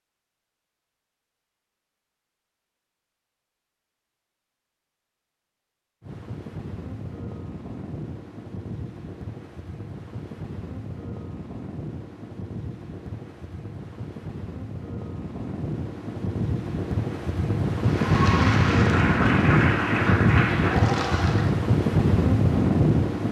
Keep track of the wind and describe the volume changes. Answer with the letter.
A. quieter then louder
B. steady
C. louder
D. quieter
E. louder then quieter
C.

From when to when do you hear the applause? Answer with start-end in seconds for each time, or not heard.
17.8-21.6.